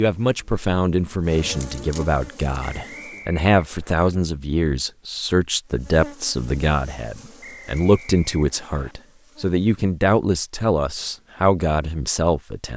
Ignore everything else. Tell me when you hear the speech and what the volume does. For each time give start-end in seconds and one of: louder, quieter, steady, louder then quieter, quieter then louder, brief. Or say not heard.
0.0-12.7 steady.